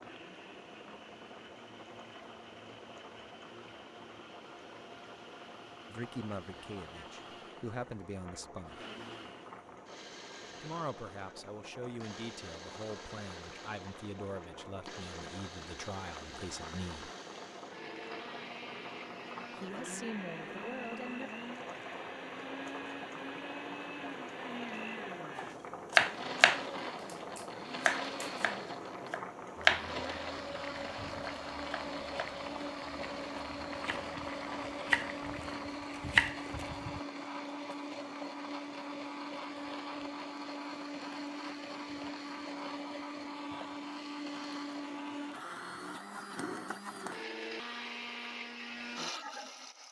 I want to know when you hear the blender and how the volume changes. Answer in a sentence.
You can hear the blender from 0.0 to 49.8 s, getting louder.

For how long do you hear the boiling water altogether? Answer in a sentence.
You can hear the boiling water for 36 seconds altogether.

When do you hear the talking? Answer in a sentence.
The talking can be heard from 5.9 to 8.8 s, from 10.6 to 17.1 s and from 19.6 to 21.3 s.